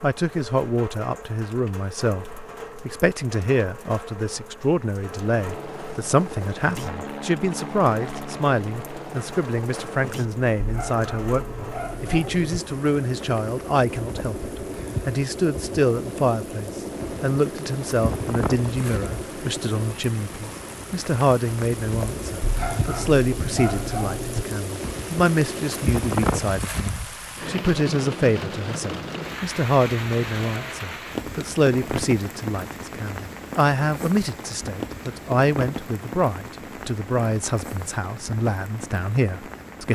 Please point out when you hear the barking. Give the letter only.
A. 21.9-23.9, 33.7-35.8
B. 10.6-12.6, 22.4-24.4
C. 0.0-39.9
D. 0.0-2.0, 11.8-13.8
B.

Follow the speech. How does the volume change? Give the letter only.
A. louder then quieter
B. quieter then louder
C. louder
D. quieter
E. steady
E.